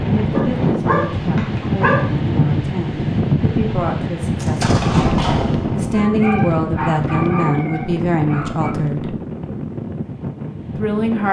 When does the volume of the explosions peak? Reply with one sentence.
The loudest moment of the explosions is at 5 seconds.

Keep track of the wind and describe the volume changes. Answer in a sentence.
The volume of the wind goes down.